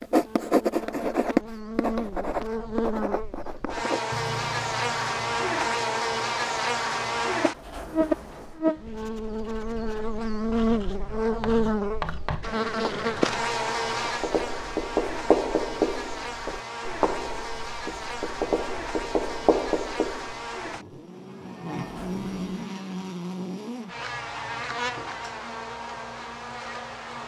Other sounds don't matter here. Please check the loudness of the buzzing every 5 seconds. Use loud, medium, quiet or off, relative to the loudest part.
medium, loud, loud, medium, medium, medium.